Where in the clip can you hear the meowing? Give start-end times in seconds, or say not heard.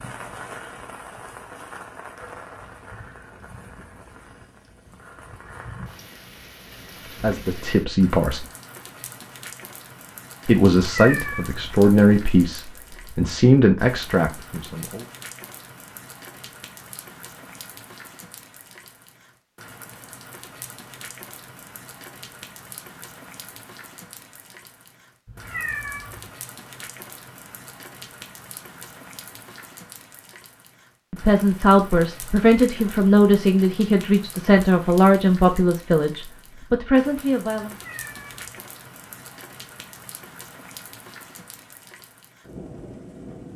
10.8-11.7, 25.2-26.3, 37.7-38.4.